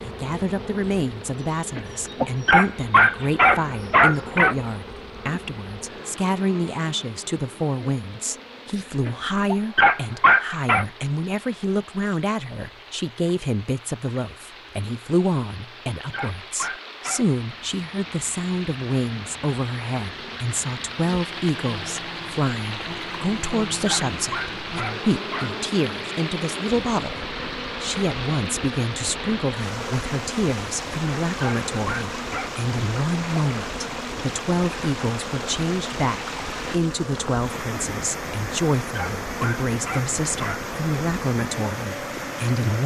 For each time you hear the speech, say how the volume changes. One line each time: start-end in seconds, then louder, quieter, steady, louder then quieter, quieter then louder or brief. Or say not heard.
0.0-42.8 steady.